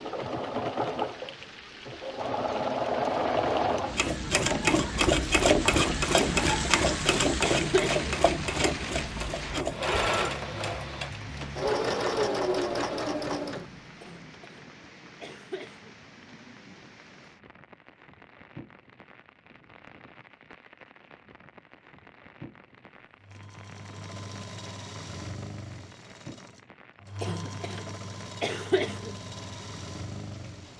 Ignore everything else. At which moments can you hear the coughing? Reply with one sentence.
You can hear the coughing from 6.5 to 8.1 s, from 14.0 to 15.9 s and from 27.2 to 29.1 s.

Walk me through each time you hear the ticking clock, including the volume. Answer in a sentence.
The ticking clock can't be heard in this clip.